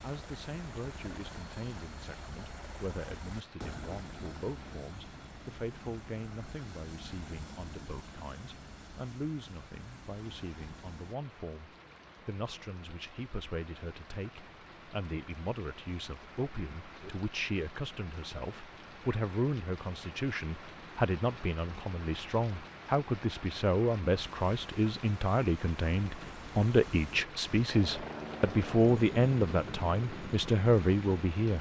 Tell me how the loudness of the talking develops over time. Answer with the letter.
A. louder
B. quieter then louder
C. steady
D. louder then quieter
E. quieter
A.